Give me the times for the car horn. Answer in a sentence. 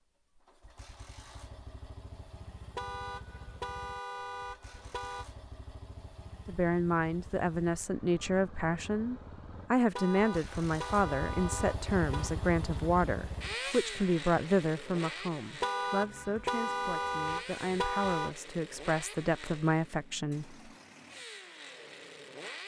The car horn can be heard from 2.8 to 5.2 s, from 9.9 to 12.3 s and from 15.6 to 18.3 s.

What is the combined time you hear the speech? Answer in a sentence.
The speech can be heard for 14 seconds in total.